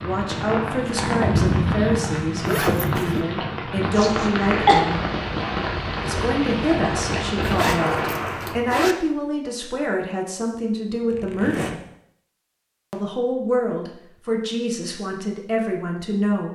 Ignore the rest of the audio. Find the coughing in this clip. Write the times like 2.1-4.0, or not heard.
4.0-4.8.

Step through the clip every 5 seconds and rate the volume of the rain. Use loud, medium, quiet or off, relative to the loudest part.
loud, loud, off, off.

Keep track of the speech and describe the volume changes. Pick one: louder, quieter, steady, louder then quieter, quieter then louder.
steady.